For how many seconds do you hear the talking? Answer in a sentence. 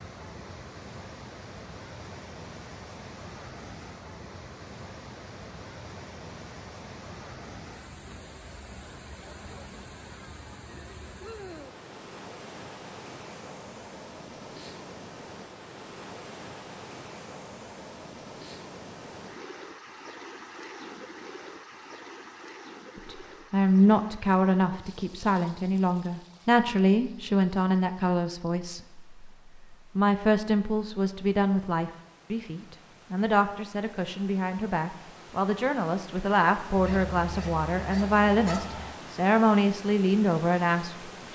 You can hear the talking for 18 seconds altogether.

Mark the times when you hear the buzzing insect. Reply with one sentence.
You can't hear the buzzing insect here.